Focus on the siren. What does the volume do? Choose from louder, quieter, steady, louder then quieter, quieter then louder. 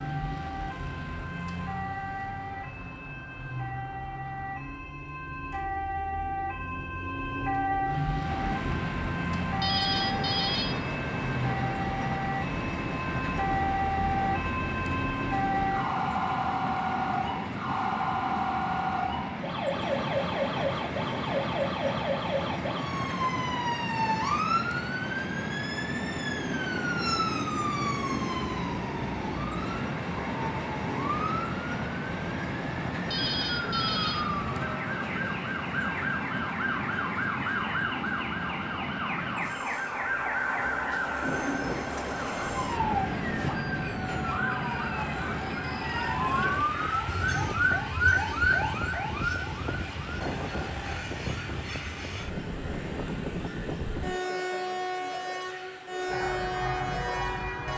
steady.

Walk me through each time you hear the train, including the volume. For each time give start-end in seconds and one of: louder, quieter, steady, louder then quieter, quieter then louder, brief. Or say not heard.
8.2-57.7 steady.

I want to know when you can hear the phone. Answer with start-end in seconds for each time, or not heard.
9.6-10.8, 33.1-34.2.